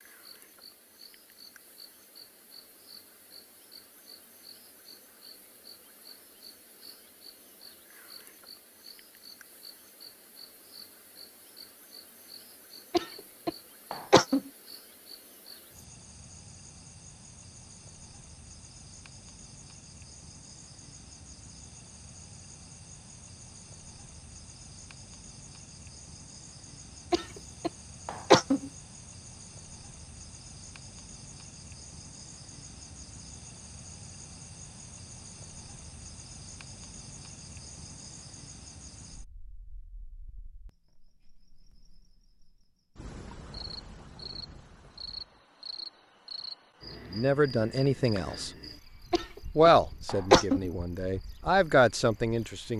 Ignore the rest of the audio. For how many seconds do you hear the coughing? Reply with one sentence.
The coughing can be heard for 5 seconds in total.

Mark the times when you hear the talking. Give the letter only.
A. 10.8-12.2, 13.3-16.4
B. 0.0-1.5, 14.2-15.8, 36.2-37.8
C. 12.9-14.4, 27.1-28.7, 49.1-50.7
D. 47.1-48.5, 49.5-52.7
D.